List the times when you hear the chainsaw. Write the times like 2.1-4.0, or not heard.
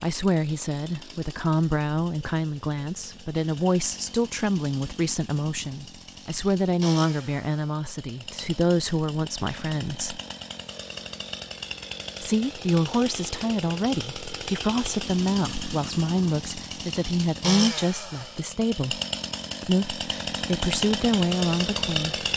0.0-22.3.